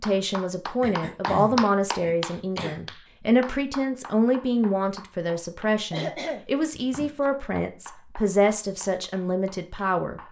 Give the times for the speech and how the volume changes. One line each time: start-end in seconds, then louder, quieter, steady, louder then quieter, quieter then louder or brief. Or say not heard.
0.0-10.2 steady.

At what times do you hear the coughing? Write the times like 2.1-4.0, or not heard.
0.8-2.9, 5.9-7.2.